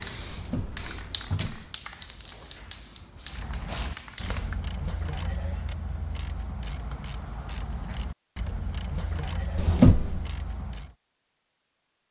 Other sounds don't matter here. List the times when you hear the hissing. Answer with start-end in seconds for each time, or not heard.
0.0-4.6.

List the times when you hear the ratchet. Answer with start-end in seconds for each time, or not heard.
3.2-10.9.